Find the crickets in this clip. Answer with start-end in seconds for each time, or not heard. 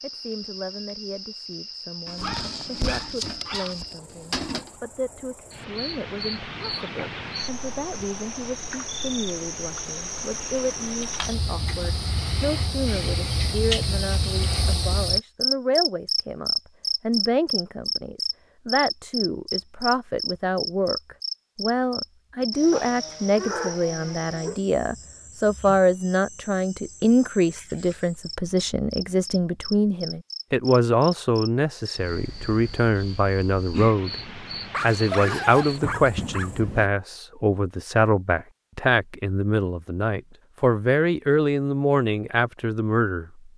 0.0-36.6.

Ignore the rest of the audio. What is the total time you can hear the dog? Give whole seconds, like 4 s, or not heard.
7 s.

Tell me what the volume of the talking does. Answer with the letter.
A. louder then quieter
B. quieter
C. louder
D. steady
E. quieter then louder
C.